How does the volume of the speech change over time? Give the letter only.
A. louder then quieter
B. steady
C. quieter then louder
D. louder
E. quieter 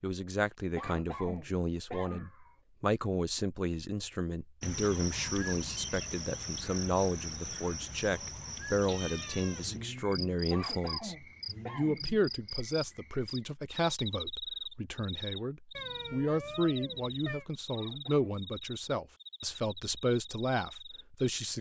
B.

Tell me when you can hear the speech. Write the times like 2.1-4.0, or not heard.
0.0-21.5.